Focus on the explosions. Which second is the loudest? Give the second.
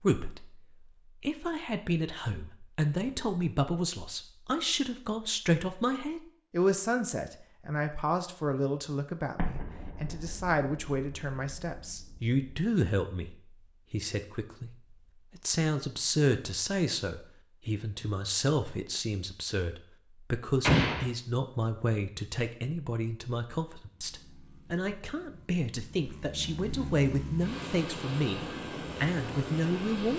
21 s.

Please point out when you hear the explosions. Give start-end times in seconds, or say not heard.
9.3-12.3, 20.6-21.1.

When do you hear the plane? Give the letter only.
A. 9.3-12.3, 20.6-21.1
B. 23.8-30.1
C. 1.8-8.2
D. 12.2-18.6
B.